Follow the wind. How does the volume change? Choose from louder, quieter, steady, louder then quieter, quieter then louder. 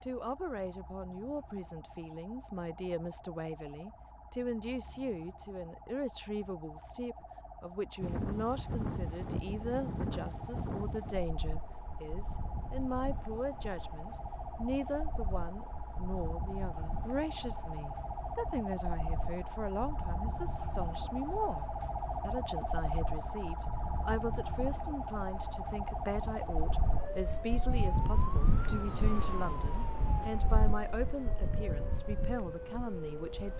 quieter then louder.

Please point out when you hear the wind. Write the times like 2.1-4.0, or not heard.
8.0-33.5.